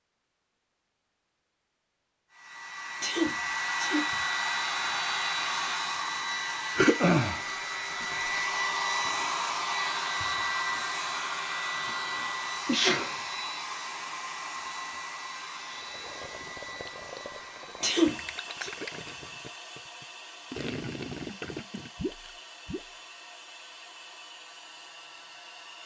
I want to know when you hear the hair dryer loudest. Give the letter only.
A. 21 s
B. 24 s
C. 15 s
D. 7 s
D.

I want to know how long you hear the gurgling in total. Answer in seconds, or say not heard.
7 s.